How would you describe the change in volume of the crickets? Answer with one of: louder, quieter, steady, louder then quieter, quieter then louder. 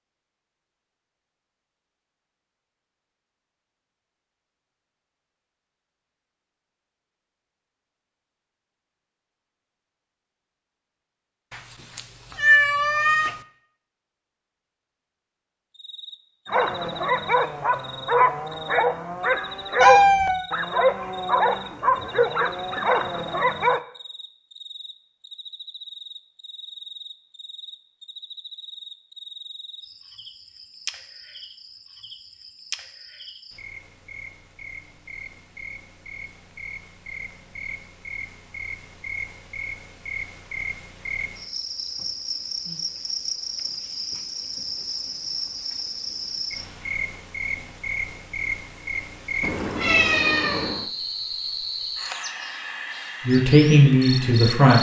louder.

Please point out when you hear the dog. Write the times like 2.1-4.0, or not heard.
16.4-23.8.